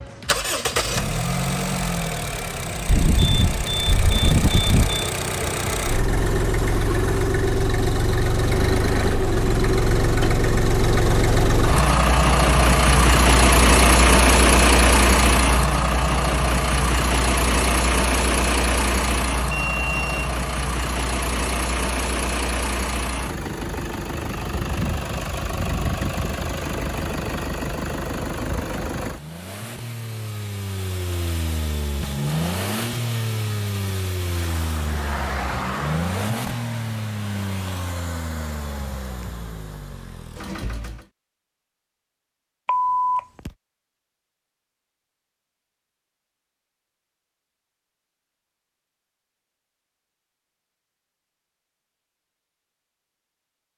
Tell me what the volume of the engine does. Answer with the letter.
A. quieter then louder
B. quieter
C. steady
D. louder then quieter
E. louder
D.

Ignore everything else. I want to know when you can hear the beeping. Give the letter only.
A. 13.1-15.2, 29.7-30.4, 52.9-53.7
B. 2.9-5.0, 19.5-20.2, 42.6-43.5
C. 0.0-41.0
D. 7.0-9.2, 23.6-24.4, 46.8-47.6
B.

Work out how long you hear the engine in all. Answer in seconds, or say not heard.
41 s.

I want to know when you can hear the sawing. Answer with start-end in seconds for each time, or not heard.
not heard.